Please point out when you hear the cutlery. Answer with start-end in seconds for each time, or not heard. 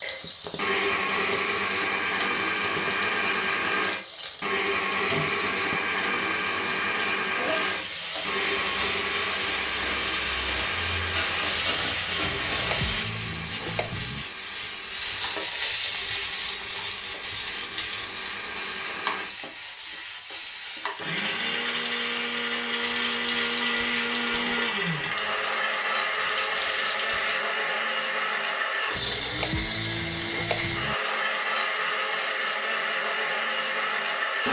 not heard.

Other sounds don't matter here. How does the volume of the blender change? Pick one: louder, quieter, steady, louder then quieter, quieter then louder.
quieter then louder.